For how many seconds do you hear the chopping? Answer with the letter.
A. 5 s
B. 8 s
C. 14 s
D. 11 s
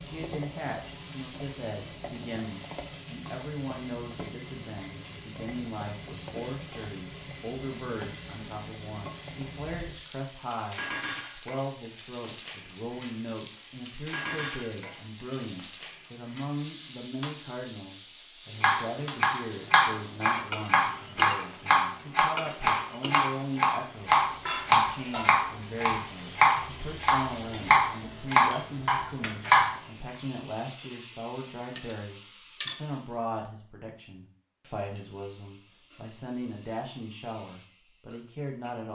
D.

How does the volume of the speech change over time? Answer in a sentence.
The volume of the speech stays about the same.